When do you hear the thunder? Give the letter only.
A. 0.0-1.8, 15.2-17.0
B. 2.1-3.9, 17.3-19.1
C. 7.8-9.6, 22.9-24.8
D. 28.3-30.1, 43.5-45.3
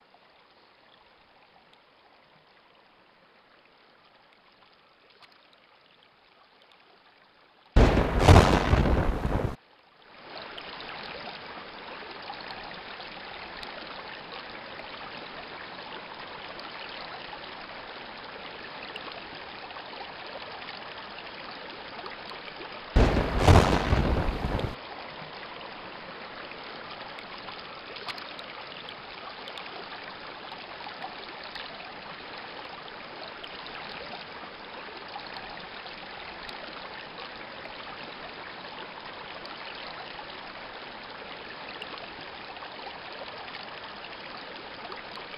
C.